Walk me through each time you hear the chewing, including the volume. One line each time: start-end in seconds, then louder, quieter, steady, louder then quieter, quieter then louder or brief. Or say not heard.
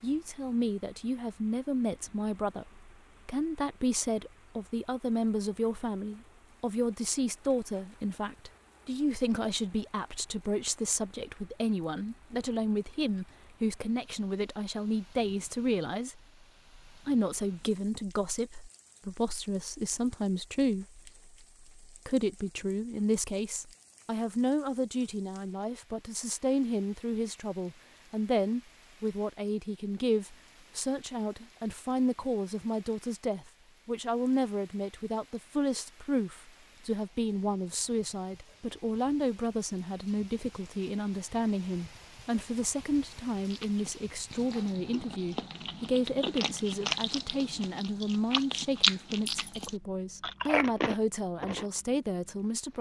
43.4-51.6 louder.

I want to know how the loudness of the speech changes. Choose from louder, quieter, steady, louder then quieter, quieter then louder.
steady.